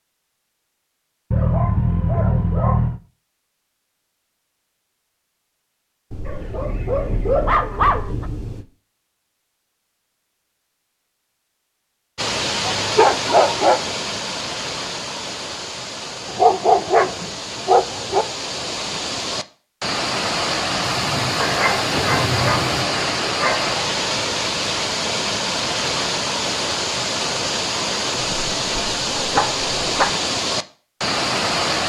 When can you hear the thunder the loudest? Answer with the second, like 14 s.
22 s.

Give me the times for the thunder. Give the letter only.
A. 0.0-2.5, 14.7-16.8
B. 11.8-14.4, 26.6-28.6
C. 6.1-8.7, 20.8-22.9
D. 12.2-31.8
C.